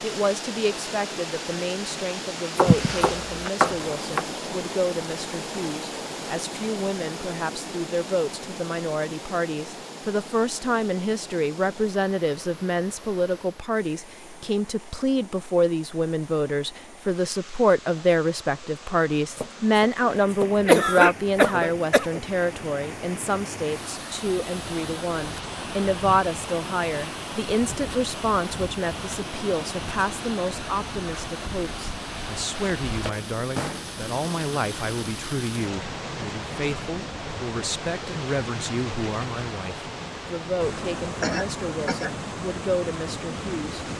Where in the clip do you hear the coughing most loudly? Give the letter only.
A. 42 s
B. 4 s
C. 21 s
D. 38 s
C.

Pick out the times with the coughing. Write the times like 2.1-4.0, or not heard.
2.6-3.5, 20.6-22.2, 41.2-42.1.